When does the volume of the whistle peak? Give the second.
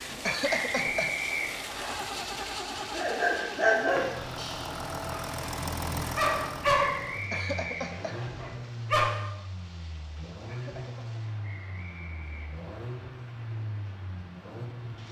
1 s.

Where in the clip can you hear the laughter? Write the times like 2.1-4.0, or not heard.
0.2-1.1, 7.3-8.2, 10.4-11.1.